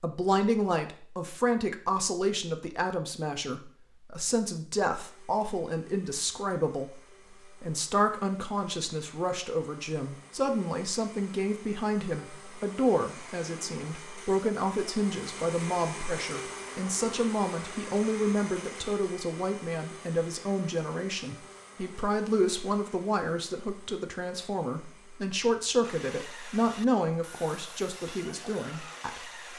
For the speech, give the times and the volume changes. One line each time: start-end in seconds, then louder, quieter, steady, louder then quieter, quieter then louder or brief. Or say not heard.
0.0-29.3 steady.